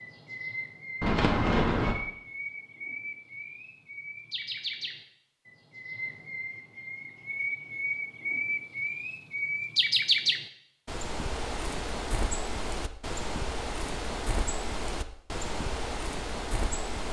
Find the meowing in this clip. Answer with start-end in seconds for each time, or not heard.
1.0-1.9.